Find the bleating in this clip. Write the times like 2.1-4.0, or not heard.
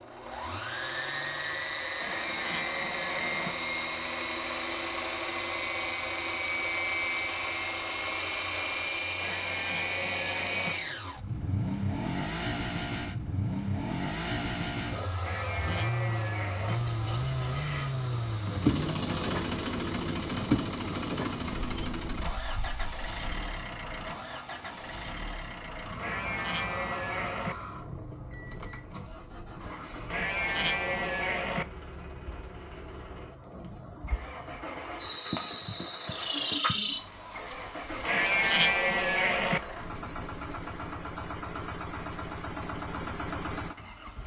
1.9-3.5, 9.2-10.8, 15.2-16.8, 25.9-27.6, 30.1-31.6, 38.0-39.6.